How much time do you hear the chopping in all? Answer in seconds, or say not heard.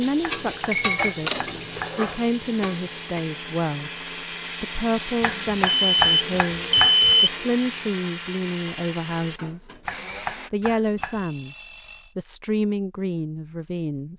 5 s.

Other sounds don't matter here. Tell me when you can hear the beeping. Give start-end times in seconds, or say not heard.
0.7-1.9, 5.8-7.5, 10.9-12.2.